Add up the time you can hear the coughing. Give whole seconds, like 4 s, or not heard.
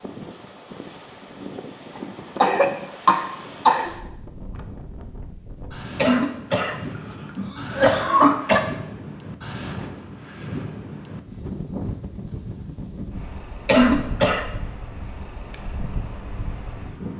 5 s.